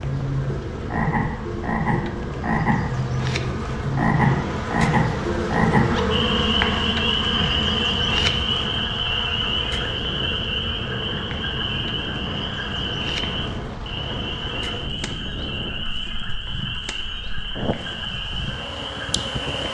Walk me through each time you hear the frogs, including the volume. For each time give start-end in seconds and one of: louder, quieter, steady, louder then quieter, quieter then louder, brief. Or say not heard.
0.0-19.6 quieter.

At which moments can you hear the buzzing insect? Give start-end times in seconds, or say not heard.
0.0-19.6.